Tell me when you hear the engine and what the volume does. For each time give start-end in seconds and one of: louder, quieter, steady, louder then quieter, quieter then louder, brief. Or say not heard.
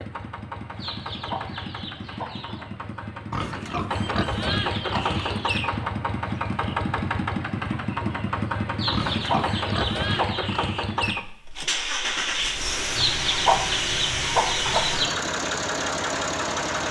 0.0-16.8 louder.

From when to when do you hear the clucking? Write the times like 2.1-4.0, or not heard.
0.8-2.6, 4.5-5.9, 8.8-10.6, 12.9-15.2.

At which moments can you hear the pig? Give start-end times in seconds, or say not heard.
3.3-5.5, 8.9-10.7.